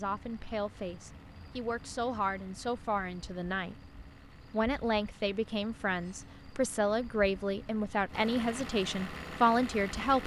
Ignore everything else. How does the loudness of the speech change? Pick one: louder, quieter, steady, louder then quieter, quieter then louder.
louder.